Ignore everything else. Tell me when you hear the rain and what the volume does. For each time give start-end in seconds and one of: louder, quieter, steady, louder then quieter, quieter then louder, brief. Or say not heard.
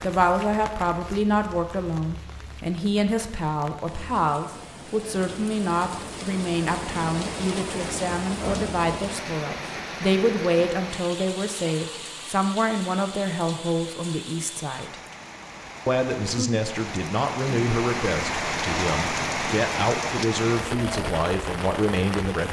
0.0-22.4 louder.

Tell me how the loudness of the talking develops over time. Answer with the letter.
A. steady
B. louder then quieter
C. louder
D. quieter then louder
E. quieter
A.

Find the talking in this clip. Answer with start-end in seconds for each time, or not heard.
0.0-14.9, 15.8-22.4.